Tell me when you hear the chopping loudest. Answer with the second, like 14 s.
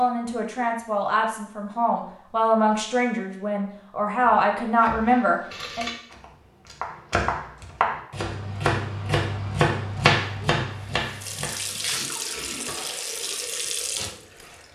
10 s.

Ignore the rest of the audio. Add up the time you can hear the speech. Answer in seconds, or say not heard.
6 s.